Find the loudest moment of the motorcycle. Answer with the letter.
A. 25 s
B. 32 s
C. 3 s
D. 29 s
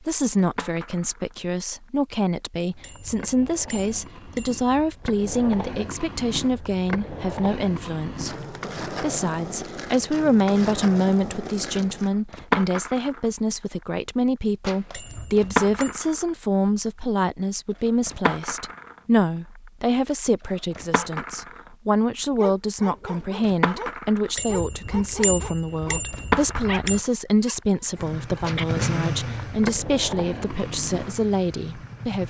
D.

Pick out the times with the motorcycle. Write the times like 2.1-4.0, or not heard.
27.9-32.2.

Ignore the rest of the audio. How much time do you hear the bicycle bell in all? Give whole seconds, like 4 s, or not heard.
6 s.